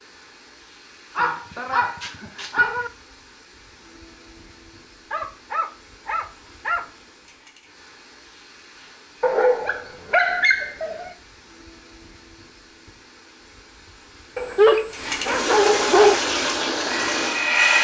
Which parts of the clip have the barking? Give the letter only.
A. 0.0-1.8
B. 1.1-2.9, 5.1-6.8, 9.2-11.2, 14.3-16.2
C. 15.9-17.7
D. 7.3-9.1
B.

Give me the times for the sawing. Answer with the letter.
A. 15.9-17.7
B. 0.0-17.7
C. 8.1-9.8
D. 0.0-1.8
A.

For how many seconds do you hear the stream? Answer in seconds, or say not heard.
18 s.